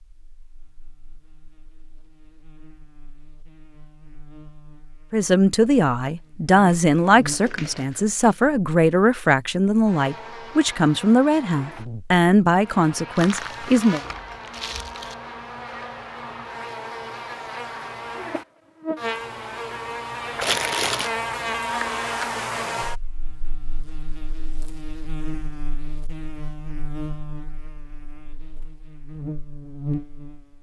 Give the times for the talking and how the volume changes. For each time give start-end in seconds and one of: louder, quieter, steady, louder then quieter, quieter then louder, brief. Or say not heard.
5.1-14.0 steady.